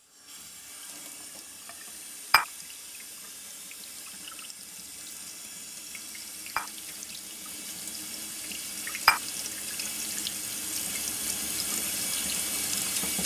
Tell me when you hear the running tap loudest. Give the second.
13 s.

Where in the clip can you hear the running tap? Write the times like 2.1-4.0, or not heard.
0.0-13.2.